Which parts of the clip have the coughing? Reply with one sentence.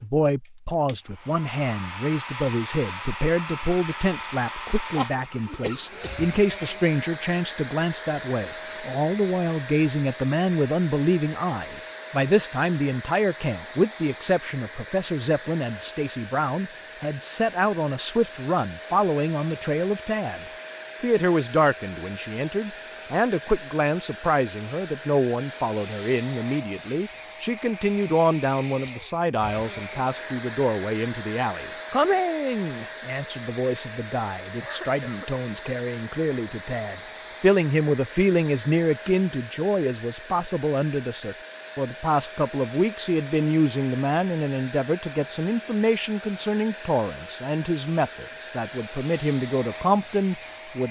You can hear the coughing from 4.8 to 6.8 s and from 34.6 to 35.3 s.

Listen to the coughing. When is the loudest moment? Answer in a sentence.
The volume of the coughing peaks at 5 seconds.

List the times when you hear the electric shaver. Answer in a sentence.
You can't hear the electric shaver here.